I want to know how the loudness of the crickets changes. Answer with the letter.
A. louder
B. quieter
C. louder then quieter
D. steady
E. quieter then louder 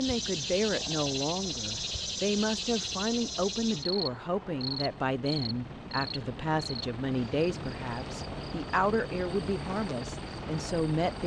B.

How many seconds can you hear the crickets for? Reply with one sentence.
You can hear the crickets for 11 seconds altogether.